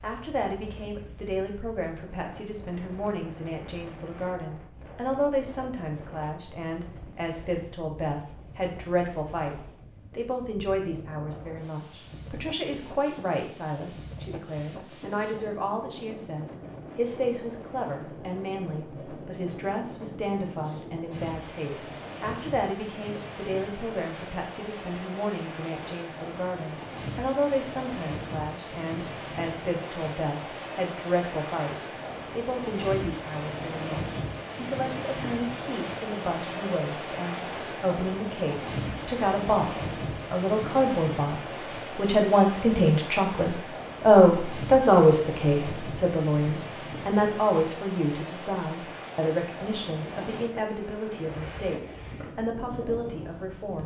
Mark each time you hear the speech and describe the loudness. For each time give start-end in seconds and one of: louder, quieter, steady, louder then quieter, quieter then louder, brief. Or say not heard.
0.0-53.8 louder.